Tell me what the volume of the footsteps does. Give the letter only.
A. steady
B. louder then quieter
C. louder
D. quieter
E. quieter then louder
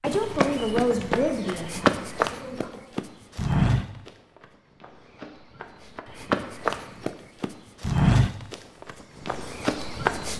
E.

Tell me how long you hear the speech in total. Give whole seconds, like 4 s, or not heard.
3 s.